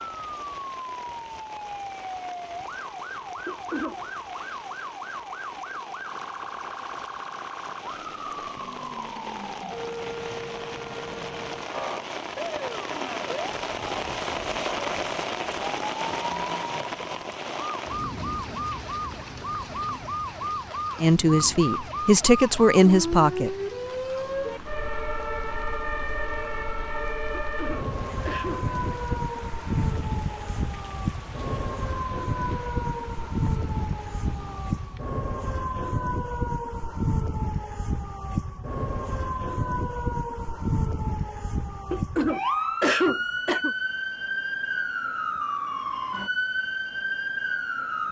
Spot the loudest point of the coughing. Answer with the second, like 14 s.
43 s.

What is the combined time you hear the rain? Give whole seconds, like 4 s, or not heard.
35 s.